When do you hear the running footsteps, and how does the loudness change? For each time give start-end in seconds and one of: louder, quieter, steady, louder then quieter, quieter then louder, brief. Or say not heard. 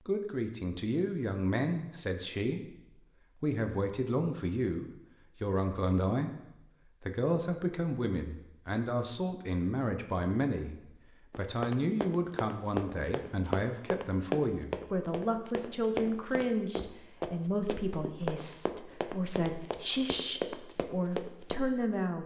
11.3-21.6 steady.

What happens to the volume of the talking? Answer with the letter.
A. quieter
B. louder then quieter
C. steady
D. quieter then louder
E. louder
C.